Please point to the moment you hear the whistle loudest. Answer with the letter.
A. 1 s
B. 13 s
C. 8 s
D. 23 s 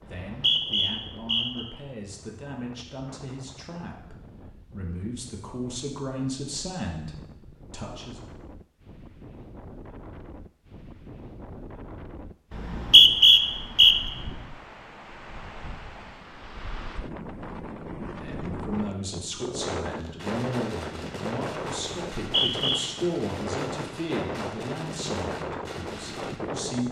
B.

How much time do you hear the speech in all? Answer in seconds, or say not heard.
17 s.